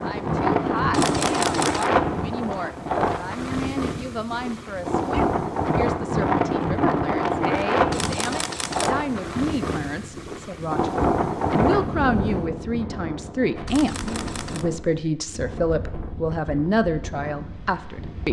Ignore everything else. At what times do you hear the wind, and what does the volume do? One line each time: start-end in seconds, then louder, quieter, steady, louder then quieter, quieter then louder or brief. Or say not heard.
0.0-18.2 quieter.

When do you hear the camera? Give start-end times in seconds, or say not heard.
0.9-1.9, 7.9-8.9, 13.7-14.7.